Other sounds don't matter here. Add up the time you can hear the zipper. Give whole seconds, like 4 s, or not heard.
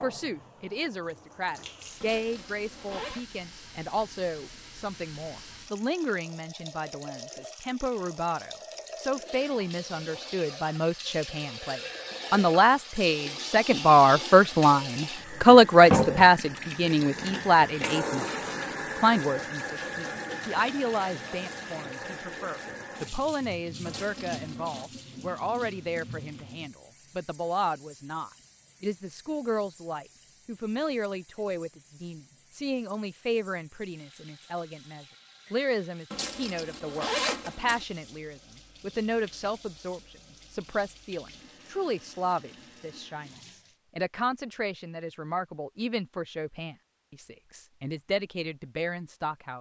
4 s.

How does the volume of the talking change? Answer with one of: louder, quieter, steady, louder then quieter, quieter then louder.
louder then quieter.